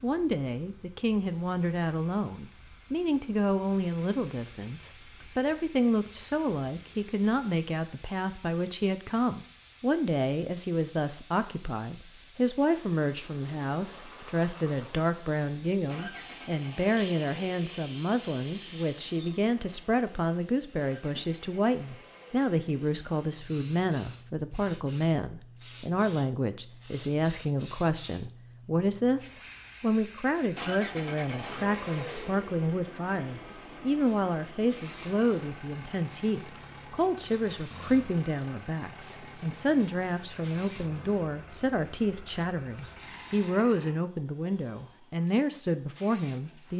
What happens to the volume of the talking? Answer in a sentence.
The volume of the talking stays about the same.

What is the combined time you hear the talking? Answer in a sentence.
You can hear the talking for 47 seconds altogether.